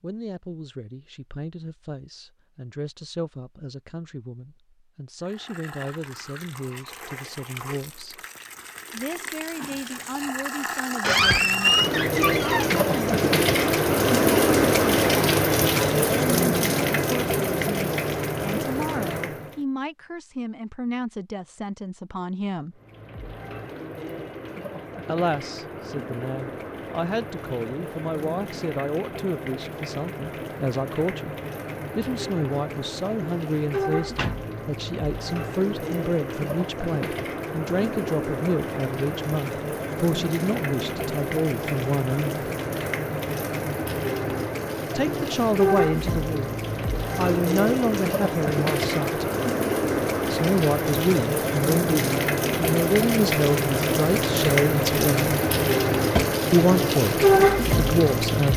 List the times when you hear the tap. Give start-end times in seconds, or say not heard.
5.2-19.6, 22.8-58.5.